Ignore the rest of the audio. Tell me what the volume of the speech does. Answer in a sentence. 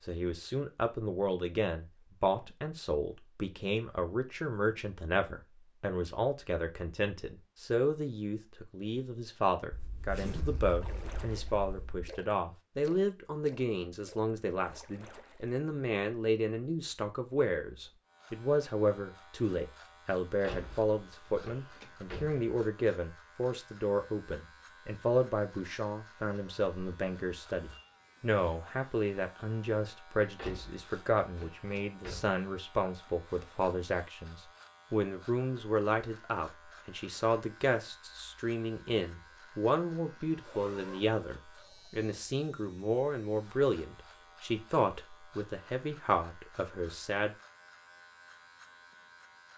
The volume of the speech stays about the same.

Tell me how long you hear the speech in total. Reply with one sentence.
The speech can be heard for 47 seconds in total.